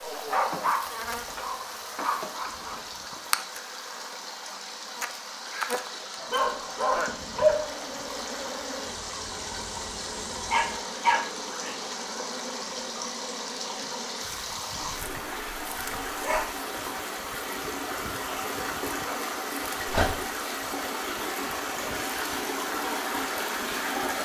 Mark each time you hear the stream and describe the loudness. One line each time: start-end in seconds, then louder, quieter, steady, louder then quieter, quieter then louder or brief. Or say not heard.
0.0-24.2 louder.